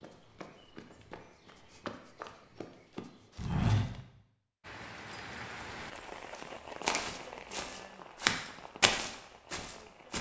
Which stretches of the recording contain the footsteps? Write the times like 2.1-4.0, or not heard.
0.0-4.0, 5.8-10.1.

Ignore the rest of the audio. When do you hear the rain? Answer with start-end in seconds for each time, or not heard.
4.6-10.1.